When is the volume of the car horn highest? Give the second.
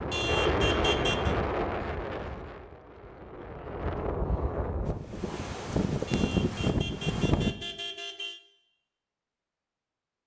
1 s.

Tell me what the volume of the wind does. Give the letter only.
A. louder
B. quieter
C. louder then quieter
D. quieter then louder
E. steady
D.